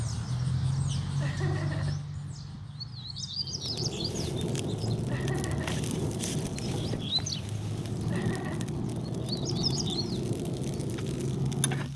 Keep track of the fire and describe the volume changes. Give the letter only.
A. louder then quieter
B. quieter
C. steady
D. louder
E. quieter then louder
C.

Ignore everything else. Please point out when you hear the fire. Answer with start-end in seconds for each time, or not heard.
3.4-11.9.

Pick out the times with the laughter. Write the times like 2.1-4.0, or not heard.
1.2-2.0, 5.0-5.8, 8.1-8.7.